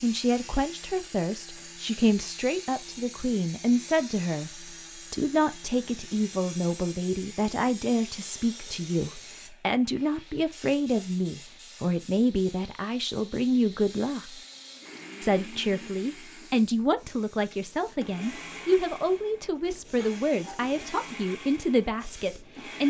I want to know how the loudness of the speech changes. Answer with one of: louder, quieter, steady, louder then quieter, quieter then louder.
steady.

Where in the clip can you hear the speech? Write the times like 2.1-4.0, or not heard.
0.0-14.3, 15.2-22.8.